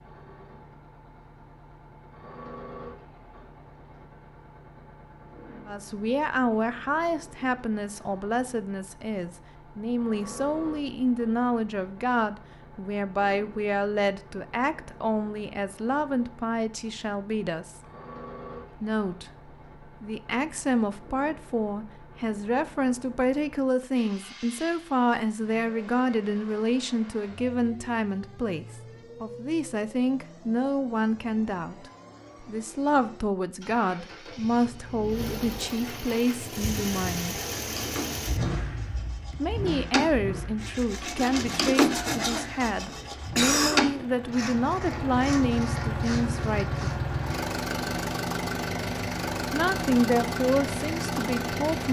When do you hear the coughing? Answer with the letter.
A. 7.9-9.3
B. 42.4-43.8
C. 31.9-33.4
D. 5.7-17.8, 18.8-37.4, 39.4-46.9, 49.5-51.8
B.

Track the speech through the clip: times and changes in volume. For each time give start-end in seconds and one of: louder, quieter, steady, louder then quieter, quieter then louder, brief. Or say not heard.
5.7-17.8 steady
18.8-37.4 steady
39.4-46.9 steady
49.5-51.8 brief.